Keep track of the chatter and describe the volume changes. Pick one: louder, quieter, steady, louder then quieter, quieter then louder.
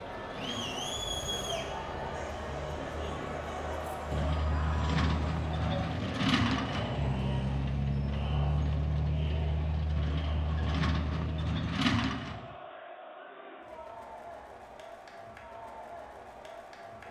quieter.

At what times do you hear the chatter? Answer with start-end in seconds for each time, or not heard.
0.0-17.0.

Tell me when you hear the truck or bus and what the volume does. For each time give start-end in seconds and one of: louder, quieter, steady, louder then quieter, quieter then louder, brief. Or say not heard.
0.0-12.6 louder.